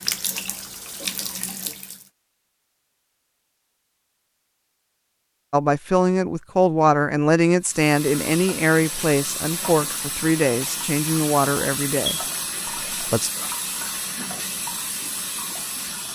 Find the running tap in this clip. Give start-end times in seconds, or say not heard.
0.0-2.1, 7.6-16.1.